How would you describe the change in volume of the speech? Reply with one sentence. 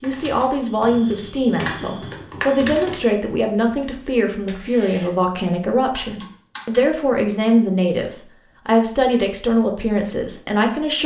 The loudness of the speech stays about the same.